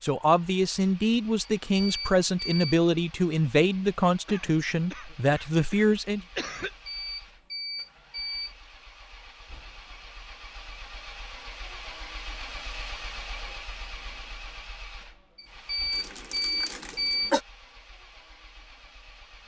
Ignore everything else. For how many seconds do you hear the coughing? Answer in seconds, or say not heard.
4 s.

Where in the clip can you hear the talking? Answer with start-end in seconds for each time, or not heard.
0.0-6.2.